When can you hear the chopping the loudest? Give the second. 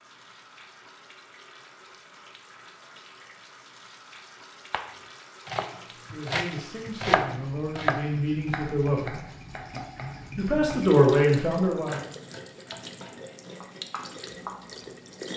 7 s.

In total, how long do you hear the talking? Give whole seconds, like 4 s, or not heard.
5 s.